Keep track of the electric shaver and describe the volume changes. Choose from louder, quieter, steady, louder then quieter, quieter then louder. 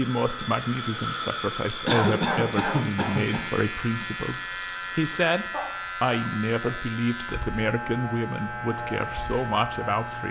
louder.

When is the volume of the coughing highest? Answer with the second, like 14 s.
2 s.